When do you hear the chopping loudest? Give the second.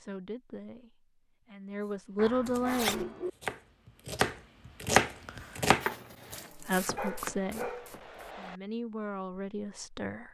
5 s.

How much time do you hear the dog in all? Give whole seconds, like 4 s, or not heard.
3 s.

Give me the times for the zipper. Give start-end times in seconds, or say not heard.
2.2-3.0, 5.8-6.5.